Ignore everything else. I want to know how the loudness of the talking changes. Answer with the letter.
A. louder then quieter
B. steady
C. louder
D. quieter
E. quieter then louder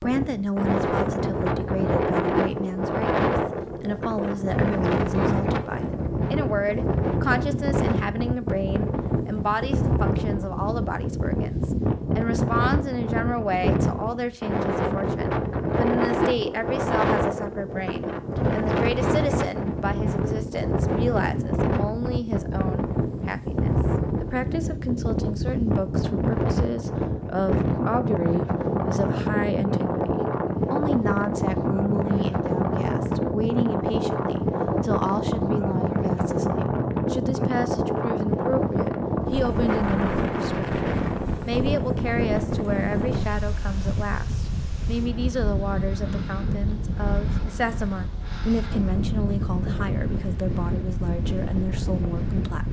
B.